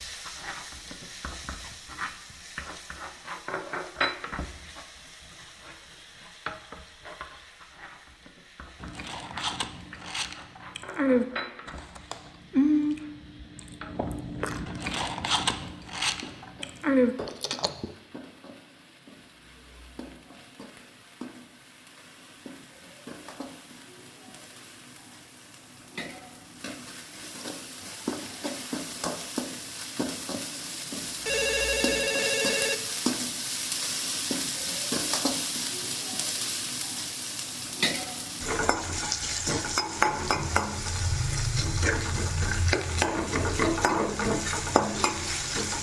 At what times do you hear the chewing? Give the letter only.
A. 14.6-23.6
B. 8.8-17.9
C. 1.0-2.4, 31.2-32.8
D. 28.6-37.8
B.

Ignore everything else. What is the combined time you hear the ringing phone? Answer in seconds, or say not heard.
3 s.